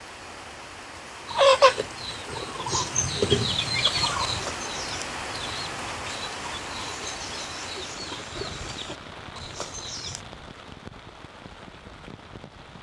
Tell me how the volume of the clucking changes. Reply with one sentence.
The loudness of the clucking goes down.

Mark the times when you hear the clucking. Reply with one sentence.
You can hear the clucking from 1.2 to 10.2 s.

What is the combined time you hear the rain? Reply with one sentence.
The rain can be heard for 13 seconds in total.